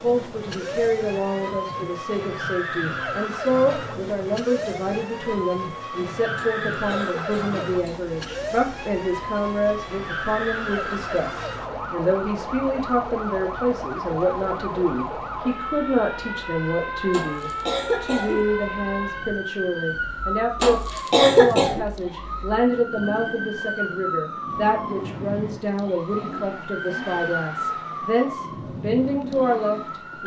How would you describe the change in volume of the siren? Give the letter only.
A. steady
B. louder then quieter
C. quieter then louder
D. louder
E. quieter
A.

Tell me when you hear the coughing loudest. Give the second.
21 s.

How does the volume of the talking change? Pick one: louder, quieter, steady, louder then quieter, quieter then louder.
steady.